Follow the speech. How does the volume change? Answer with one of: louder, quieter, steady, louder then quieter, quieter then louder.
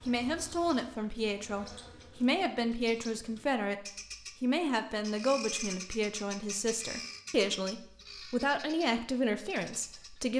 steady.